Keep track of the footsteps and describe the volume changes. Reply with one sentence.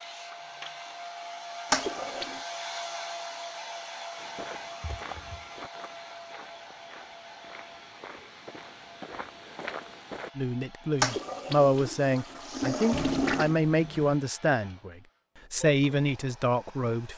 The volume of the footsteps goes down, then up.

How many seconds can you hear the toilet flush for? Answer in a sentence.
You can hear the toilet flush for 3 seconds altogether.